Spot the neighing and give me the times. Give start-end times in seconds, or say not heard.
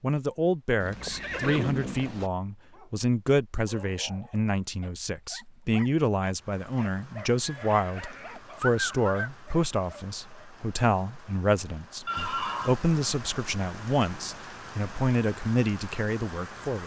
0.8-2.3, 7.4-9.3, 12.1-12.8.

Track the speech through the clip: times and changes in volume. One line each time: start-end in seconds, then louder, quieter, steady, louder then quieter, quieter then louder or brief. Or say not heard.
0.0-16.8 steady.